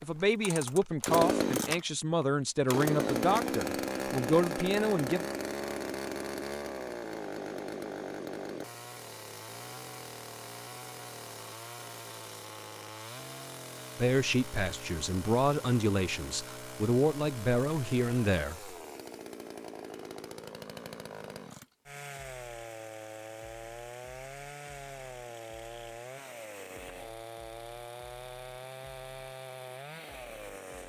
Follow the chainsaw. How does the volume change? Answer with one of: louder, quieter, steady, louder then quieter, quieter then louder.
quieter.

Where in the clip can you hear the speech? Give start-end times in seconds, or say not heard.
0.0-5.2, 13.9-18.8.